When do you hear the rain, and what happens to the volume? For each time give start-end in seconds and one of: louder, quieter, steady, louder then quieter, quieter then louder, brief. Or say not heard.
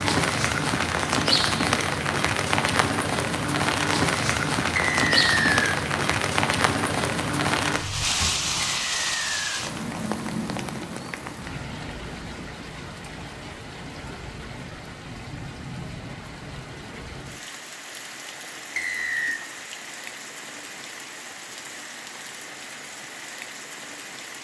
0.0-24.3 quieter.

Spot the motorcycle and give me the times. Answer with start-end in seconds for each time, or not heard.
not heard.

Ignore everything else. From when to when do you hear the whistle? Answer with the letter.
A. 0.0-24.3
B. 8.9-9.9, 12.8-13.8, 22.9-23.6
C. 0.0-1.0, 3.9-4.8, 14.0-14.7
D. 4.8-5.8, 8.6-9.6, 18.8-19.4
D.